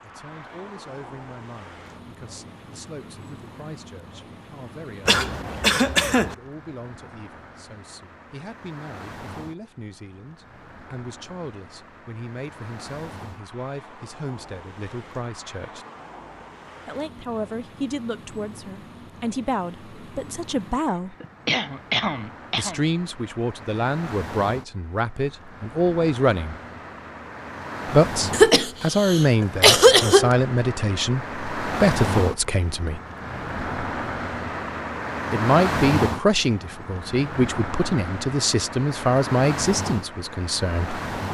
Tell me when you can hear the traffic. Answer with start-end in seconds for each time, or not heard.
0.0-41.2.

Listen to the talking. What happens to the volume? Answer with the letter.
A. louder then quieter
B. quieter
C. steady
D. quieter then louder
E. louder
E.